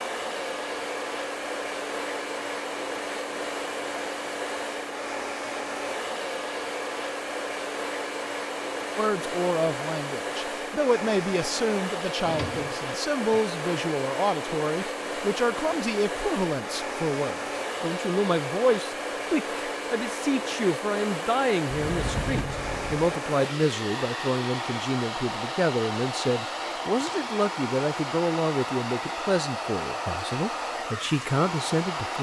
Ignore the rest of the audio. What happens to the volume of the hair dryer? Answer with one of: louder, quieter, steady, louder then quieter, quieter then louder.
steady.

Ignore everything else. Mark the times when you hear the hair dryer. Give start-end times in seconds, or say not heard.
0.0-32.1.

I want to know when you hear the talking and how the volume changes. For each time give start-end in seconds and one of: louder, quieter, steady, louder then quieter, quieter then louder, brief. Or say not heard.
8.9-32.1 steady.